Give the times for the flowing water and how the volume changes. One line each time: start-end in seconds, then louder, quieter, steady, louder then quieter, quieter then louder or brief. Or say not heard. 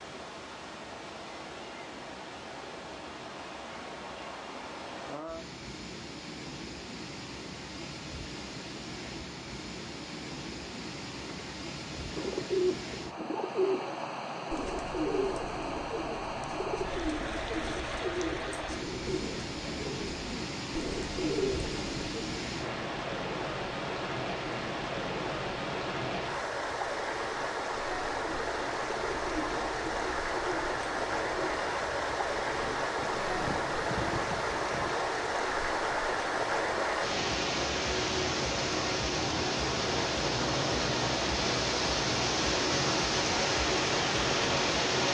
0.0-45.1 louder.